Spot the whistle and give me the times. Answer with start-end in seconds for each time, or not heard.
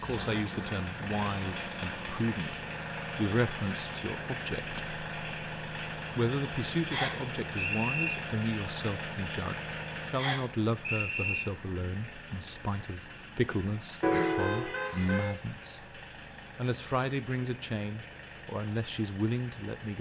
6.9-8.2, 10.2-11.4.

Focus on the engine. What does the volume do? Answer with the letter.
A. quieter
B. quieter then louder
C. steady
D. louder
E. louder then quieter
A.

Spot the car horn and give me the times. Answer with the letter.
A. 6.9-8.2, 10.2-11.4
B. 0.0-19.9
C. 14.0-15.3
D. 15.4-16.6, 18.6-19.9
C.